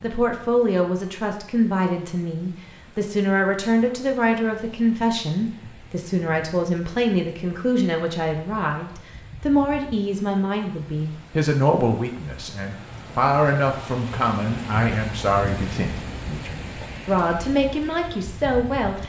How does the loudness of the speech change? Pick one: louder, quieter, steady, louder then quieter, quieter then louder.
steady.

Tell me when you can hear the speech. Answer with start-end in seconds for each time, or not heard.
0.0-19.0.